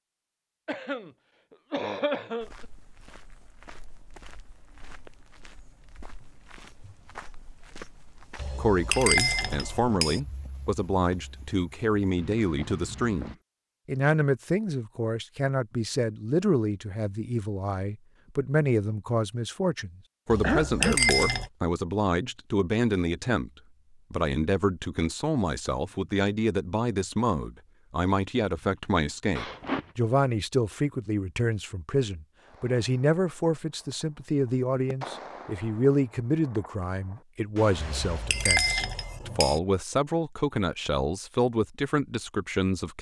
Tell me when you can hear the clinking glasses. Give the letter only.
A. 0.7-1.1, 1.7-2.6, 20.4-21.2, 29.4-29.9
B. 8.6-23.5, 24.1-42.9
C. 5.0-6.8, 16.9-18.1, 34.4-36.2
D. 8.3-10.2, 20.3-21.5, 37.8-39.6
D.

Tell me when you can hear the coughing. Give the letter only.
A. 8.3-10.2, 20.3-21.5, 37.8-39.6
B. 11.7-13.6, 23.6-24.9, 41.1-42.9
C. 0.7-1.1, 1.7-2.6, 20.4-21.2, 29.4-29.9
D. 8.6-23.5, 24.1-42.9
C.